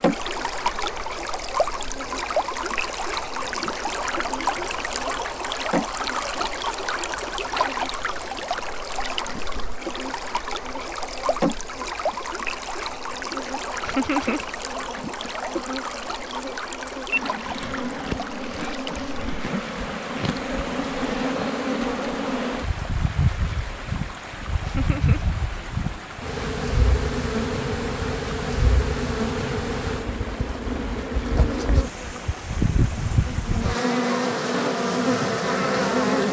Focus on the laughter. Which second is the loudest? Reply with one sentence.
The loudest moment of the laughter is at 14 seconds.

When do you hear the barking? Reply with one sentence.
The barking can't be heard in this clip.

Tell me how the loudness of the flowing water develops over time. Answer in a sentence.
The volume of the flowing water goes down.